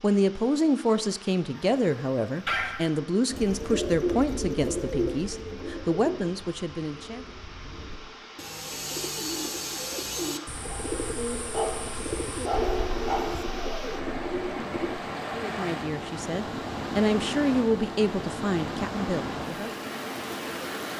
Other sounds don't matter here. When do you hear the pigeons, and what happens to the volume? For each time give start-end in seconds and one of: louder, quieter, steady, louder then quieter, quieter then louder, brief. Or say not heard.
3.2-15.0 quieter then louder.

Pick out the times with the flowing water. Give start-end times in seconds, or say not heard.
0.0-20.9.